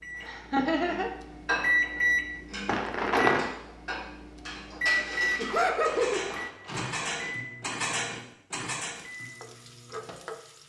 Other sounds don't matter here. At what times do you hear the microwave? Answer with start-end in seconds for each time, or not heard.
0.0-10.3.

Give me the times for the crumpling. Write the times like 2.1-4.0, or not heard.
2.6-3.5, 5.5-7.0.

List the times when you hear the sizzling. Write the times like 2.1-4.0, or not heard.
8.9-10.6.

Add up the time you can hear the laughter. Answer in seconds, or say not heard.
2 s.